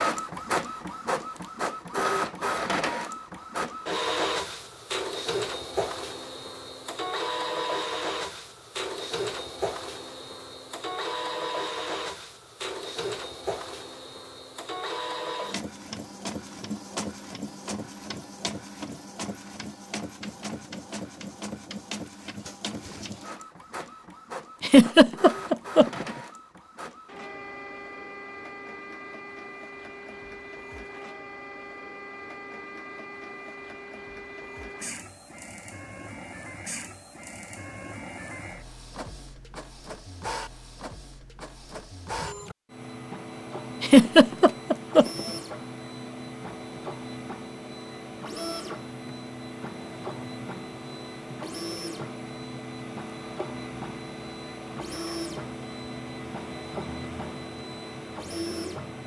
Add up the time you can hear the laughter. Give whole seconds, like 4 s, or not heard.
3 s.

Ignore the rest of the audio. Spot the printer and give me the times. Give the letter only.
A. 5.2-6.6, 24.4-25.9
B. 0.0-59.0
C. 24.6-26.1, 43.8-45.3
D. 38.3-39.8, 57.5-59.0
B.